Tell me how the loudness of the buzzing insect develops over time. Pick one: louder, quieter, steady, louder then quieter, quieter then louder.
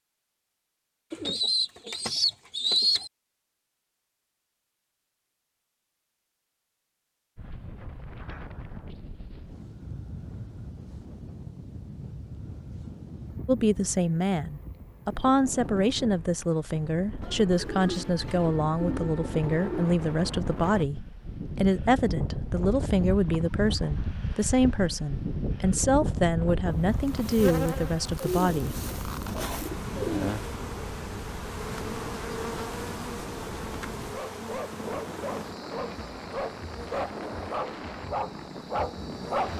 quieter.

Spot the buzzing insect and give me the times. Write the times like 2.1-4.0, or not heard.
26.6-39.5.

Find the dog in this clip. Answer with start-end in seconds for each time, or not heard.
34.1-39.5.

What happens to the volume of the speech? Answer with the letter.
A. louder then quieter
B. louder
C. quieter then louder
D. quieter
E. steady
E.